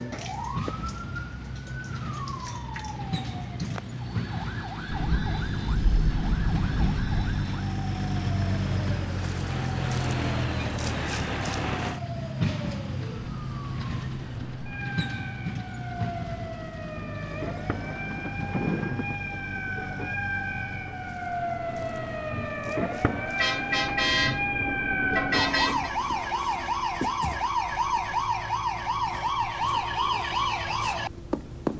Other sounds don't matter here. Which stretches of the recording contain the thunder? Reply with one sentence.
The thunder can be heard from 4.8 to 7.3 s and from 17.7 to 19.1 s.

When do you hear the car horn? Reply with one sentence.
The car horn can be heard from 23.4 to 25.9 s.